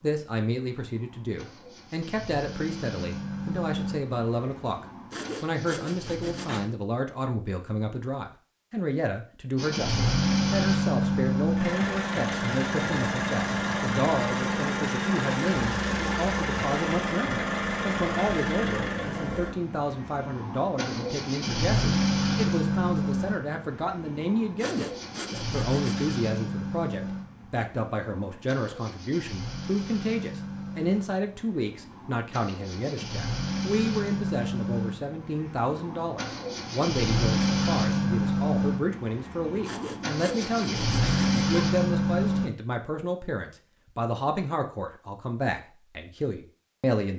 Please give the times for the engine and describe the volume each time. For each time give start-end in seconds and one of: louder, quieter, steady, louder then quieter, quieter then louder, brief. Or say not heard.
0.0-6.7 louder then quieter
9.6-42.5 quieter then louder.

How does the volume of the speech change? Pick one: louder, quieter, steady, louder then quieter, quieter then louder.
steady.